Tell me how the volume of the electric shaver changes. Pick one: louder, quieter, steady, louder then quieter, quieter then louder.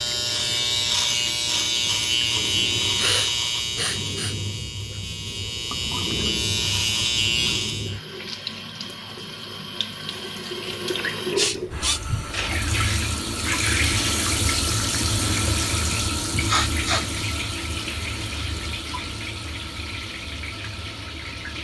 quieter then louder.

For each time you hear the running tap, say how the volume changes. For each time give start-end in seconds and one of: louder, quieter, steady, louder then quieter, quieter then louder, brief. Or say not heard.
0.0-21.5 louder then quieter.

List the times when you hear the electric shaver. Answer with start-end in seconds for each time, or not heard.
0.0-8.0.